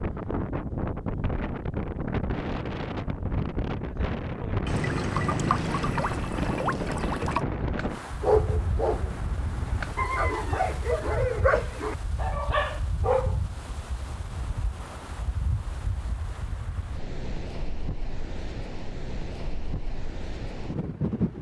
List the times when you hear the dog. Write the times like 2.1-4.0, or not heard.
7.4-13.3.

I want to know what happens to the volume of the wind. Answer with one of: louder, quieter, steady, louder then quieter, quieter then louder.
quieter.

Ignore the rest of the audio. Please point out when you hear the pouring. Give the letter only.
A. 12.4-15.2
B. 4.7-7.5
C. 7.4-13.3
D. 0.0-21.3
B.